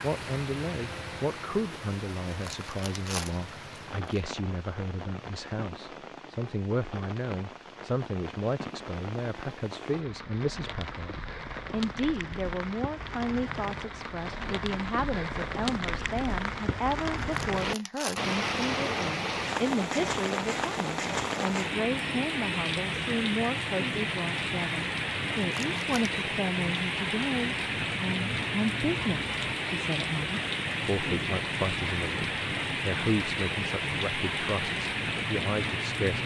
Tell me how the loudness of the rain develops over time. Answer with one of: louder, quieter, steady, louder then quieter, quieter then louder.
louder.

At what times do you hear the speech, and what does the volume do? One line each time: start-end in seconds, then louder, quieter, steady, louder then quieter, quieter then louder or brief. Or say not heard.
0.0-36.2 steady.